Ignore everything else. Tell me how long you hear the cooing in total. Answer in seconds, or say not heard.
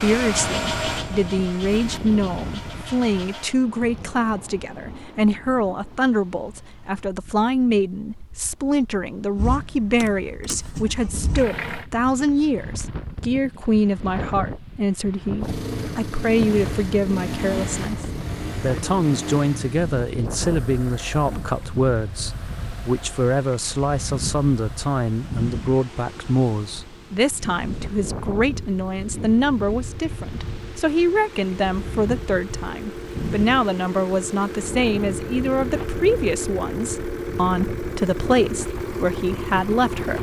not heard.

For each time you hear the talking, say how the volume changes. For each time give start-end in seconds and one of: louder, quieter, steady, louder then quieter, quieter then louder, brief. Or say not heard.
0.0-40.1 steady.